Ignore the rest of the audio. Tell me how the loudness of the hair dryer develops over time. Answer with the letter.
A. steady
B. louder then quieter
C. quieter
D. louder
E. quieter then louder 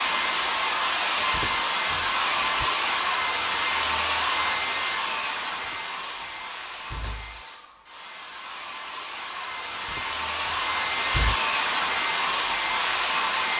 E.